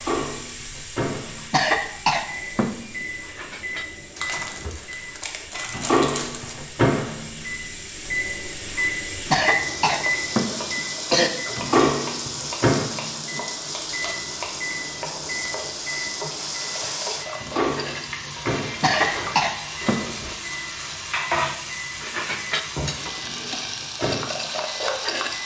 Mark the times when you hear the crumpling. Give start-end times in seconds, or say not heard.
4.2-6.7.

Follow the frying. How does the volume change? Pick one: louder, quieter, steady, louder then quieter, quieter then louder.
louder.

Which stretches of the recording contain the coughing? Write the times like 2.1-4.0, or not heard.
1.5-3.0, 9.3-11.3, 18.8-20.1.